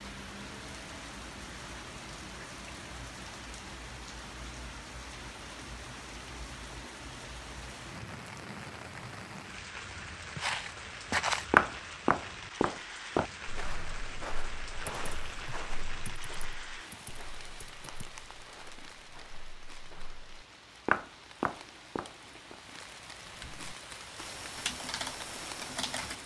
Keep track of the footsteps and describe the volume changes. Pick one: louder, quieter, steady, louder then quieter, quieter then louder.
quieter then louder.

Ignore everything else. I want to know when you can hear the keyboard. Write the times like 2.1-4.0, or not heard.
14.8-18.1, 23.2-26.1.